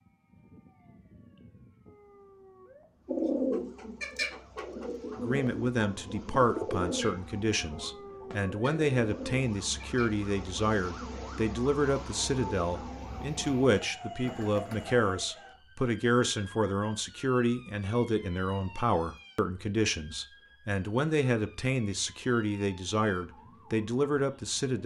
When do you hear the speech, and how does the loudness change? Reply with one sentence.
You can hear the speech from 5.2 to 24.8 s, at a steady volume.